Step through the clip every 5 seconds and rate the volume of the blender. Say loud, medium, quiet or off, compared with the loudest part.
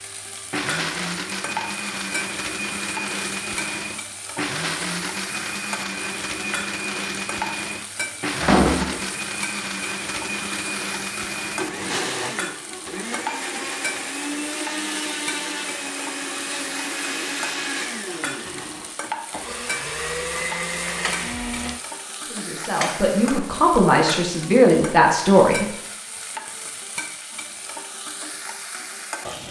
loud, loud, loud, loud, loud, off.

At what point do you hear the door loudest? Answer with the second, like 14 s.
9 s.